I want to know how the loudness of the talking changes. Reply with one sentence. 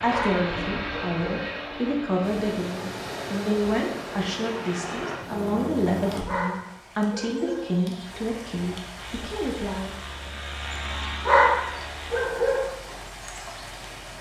The loudness of the talking stays about the same.